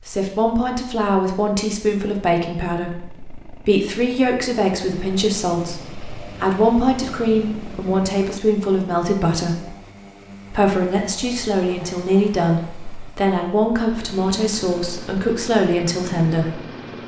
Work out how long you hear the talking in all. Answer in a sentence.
You can hear the talking for 16 seconds altogether.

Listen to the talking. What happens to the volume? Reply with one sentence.
The volume of the talking stays about the same.